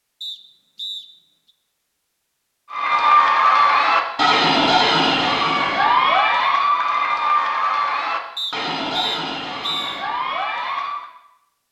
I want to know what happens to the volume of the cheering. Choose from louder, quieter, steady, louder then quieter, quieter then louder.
quieter.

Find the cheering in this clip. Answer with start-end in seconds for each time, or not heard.
2.7-11.1.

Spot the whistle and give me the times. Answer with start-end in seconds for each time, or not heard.
0.2-1.1, 8.3-10.1.